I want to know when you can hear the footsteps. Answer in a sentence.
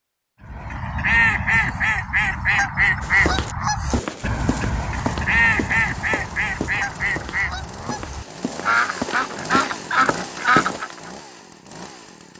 The footsteps can be heard from 3.0 to 10.8 s.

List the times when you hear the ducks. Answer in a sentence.
You can hear the ducks from 0.5 to 11.1 s.